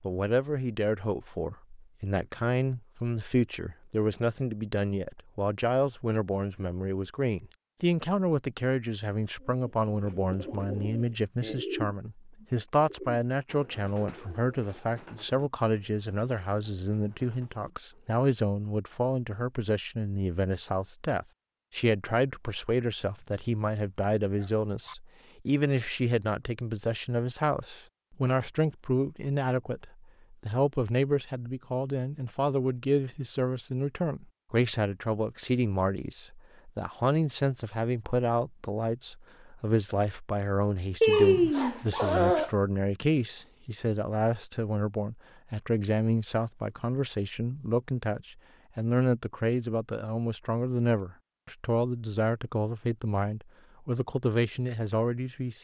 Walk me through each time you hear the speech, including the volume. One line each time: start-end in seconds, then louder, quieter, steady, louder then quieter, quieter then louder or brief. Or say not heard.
0.0-55.5 steady.